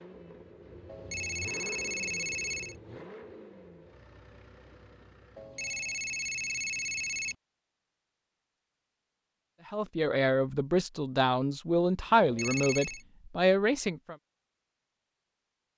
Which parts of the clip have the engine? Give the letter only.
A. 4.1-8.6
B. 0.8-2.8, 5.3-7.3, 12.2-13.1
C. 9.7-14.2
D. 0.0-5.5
D.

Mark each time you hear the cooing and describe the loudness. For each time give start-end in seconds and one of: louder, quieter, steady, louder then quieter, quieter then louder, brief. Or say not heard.
not heard.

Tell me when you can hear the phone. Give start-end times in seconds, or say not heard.
0.8-2.8, 5.3-7.3, 12.2-13.1.